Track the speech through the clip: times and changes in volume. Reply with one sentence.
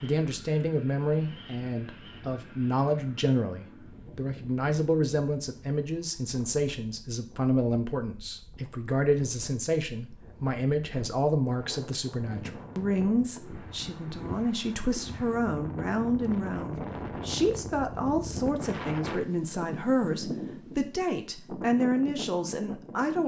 The speech can be heard from 0.0 to 23.2 s, at a steady volume.